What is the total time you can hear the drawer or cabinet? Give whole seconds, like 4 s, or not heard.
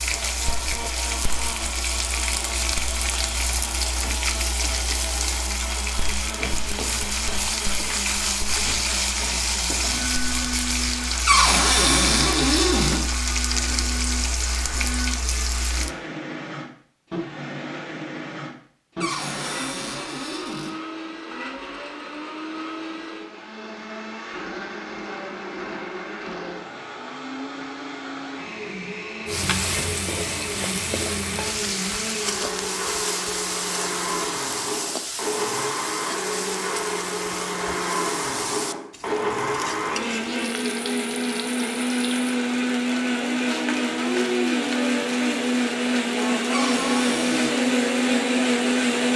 5 s.